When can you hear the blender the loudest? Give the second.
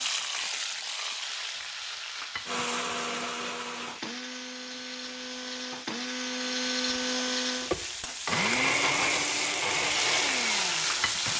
9 s.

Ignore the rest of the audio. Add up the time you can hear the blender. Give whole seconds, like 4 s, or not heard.
9 s.